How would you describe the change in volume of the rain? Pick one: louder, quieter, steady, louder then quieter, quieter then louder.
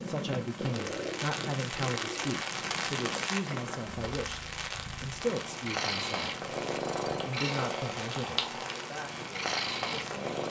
quieter.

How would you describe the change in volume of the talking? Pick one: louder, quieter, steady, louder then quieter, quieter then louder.
quieter.